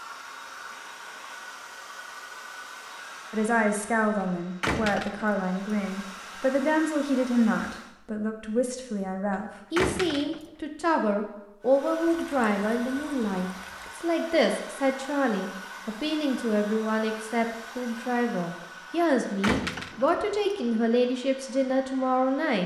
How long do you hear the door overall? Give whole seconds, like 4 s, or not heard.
2 s.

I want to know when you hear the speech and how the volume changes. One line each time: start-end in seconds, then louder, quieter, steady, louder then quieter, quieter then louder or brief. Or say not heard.
3.3-22.6 steady.